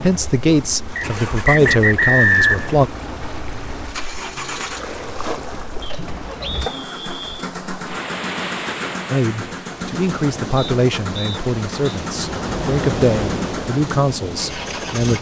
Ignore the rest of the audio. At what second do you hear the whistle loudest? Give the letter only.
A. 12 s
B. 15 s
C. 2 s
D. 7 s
C.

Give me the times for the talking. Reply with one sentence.
You can hear the talking from 0.0 to 2.9 s and from 9.1 to 15.1 s.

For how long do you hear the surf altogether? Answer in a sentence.
The surf can be heard for 15 seconds in total.